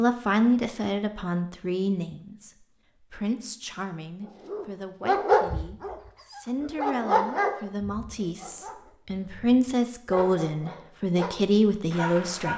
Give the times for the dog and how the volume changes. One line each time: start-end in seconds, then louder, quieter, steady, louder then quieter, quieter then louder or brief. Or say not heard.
4.5-12.5 quieter then louder.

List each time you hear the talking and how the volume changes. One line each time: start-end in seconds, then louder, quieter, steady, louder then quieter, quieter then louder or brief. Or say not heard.
0.0-12.5 quieter then louder.